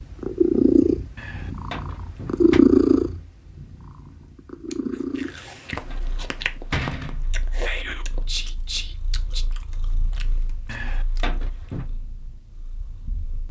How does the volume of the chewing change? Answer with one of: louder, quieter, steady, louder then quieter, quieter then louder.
quieter.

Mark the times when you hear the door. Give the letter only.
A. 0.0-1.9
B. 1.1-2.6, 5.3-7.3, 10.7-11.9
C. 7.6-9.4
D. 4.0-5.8
B.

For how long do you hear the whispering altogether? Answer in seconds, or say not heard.
2 s.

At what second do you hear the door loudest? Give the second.
7 s.